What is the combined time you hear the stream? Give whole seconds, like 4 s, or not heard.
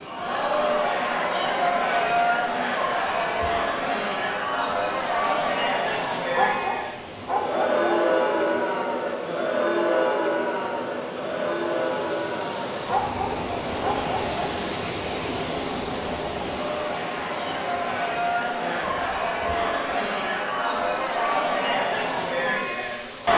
23 s.